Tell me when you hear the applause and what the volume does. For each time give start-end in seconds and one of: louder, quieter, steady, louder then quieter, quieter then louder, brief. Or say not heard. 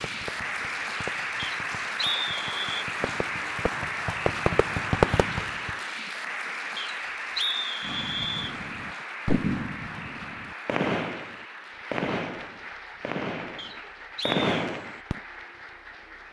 0.0-16.2 quieter.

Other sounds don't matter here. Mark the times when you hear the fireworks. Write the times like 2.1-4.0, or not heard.
0.0-5.7, 7.8-15.2.